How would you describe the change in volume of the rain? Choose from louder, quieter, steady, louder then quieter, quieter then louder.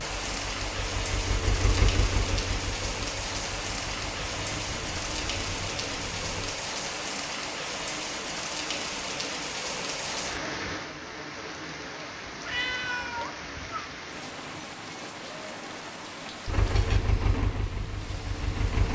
quieter.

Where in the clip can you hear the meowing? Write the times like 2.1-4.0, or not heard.
12.4-13.9.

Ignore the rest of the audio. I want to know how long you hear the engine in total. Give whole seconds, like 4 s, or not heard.
9 s.